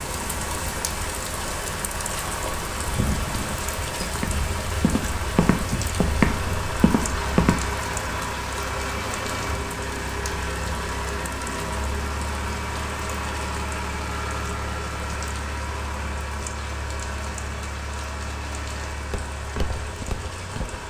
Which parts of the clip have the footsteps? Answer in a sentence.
You can hear the footsteps from 2.4 to 7.5 s and from 19.1 to 20.8 s.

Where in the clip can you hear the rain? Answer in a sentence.
You can hear the rain from 0.0 to 20.8 s.